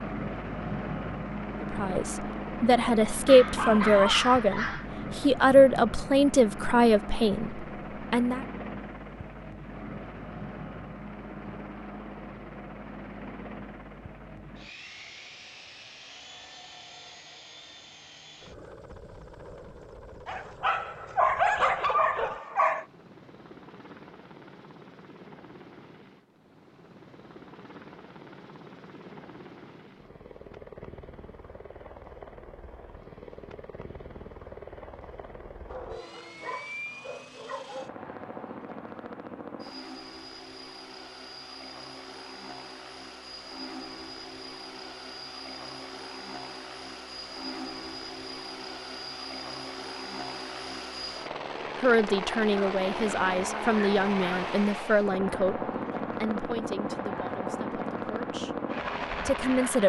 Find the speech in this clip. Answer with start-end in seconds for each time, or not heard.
1.7-8.4, 51.8-59.8.